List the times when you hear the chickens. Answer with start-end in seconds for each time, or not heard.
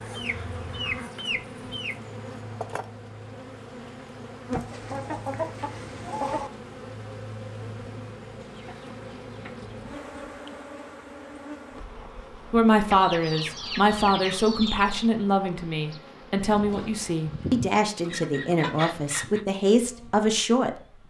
0.0-2.0, 4.5-6.5, 8.6-10.7, 12.9-15.1, 17.2-19.4.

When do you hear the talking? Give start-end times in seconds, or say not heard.
12.5-21.0.